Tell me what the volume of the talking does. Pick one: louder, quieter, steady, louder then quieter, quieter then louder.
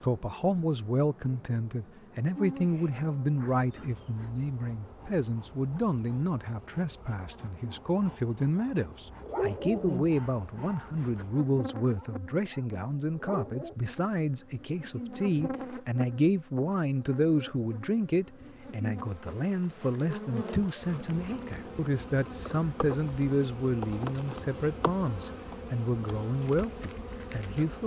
steady.